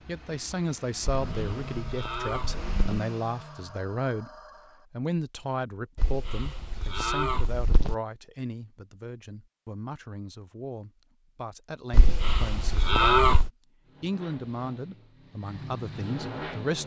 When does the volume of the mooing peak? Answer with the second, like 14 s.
13 s.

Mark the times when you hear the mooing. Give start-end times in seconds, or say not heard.
1.2-3.0, 6.0-8.0, 11.9-13.5.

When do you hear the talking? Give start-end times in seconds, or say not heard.
0.1-4.3, 4.9-13.3, 14.0-16.8.